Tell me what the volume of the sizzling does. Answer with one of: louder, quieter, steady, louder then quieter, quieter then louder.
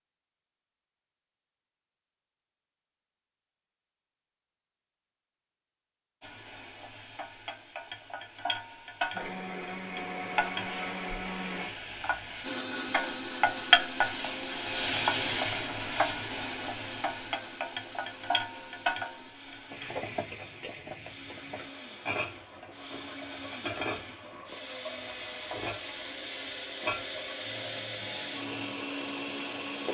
louder then quieter.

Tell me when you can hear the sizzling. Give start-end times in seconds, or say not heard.
6.2-29.8.